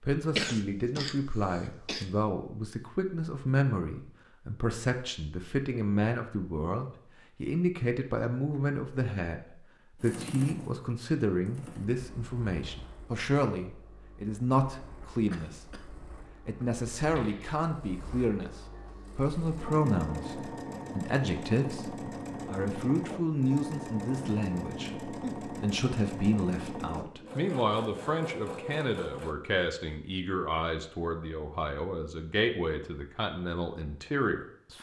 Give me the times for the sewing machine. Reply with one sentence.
You can hear the sewing machine from 9.9 to 29.4 s.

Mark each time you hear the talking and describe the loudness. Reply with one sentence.
You can hear the talking from 0.0 to 34.7 s, at a steady volume.